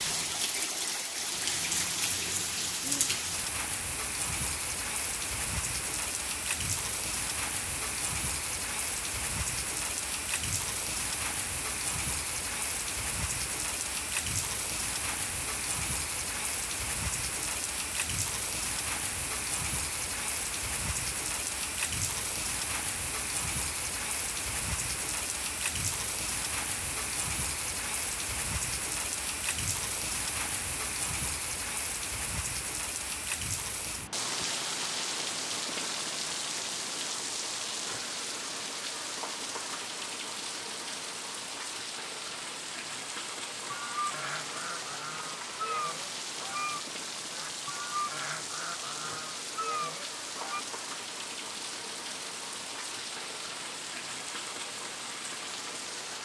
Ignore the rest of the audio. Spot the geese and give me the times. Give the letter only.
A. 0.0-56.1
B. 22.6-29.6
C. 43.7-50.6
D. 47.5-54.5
C.